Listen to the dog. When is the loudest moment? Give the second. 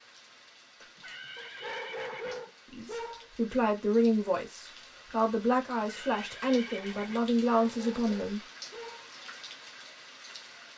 2 s.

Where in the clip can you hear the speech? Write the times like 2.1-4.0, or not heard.
2.7-8.4.